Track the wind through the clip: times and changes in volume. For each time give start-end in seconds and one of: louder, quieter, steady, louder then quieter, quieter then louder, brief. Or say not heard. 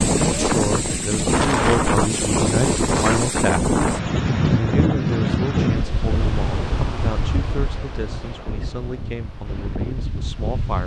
0.0-10.8 quieter.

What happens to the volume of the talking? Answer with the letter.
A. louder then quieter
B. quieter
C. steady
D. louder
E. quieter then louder
B.